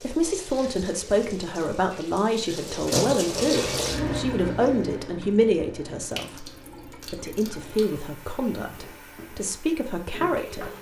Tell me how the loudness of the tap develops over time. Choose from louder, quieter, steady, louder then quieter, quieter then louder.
louder then quieter.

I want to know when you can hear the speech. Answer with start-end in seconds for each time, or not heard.
0.0-10.7.